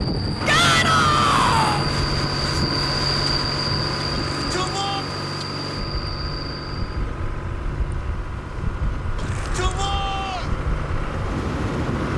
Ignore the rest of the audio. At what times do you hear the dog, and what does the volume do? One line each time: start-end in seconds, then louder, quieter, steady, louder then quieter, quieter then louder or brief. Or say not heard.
not heard.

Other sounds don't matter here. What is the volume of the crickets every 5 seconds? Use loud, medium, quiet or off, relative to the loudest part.
loud, medium, off.